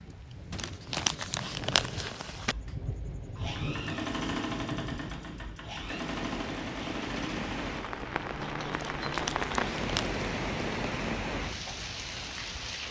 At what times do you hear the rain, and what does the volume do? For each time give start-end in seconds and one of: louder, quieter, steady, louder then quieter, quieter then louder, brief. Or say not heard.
0.0-12.8 louder.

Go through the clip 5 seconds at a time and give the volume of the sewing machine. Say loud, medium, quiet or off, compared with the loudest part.
loud, loud, off.